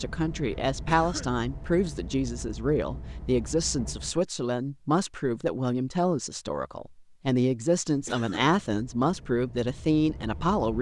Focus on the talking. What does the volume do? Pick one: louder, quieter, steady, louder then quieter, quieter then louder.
steady.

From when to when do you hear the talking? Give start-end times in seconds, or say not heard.
0.0-10.7.